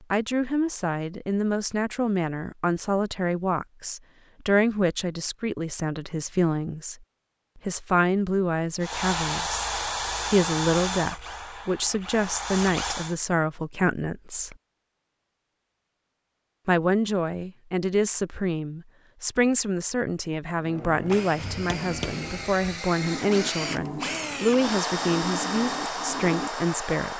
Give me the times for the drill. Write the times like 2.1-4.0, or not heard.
8.8-13.2, 20.6-27.1.